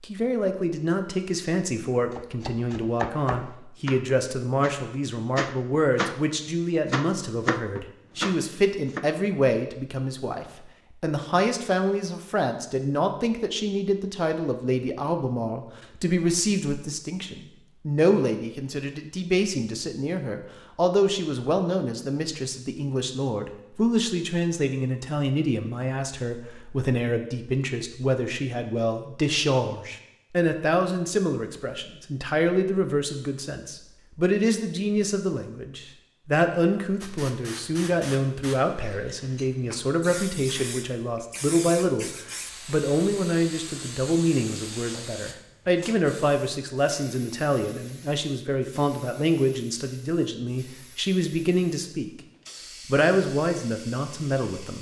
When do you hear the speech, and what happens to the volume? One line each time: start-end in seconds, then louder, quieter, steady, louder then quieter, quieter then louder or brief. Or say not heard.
0.0-52.1 steady
52.9-54.7 brief.